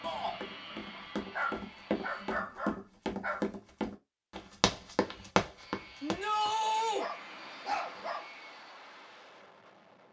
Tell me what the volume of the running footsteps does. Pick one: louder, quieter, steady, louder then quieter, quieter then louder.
louder.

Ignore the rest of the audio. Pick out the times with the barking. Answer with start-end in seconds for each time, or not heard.
0.8-3.5, 7.0-8.3.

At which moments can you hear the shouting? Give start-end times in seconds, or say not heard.
0.0-0.4, 6.0-7.0.